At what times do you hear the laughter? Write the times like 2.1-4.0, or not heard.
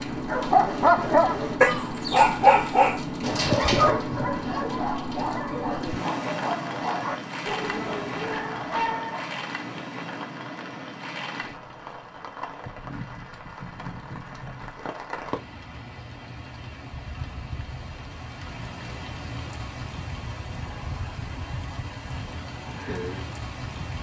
not heard.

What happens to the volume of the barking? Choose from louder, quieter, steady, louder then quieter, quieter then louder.
quieter.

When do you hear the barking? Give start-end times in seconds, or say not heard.
0.2-9.4.